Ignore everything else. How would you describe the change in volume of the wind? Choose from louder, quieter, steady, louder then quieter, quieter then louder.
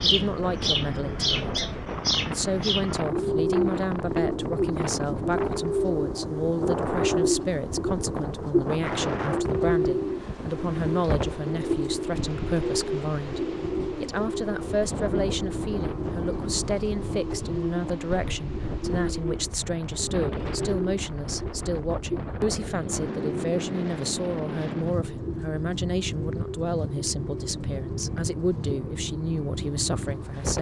steady.